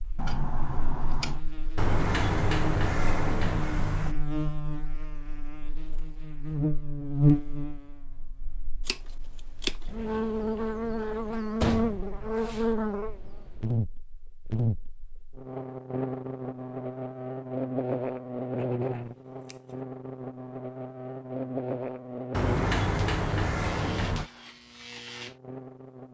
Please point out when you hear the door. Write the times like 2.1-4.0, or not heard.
1.8-4.2, 11.6-12.7, 22.3-24.3.